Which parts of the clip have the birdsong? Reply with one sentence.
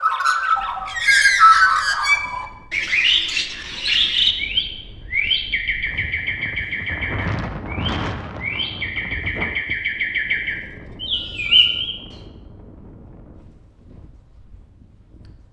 You can hear the birdsong from 0.0 to 11.9 s.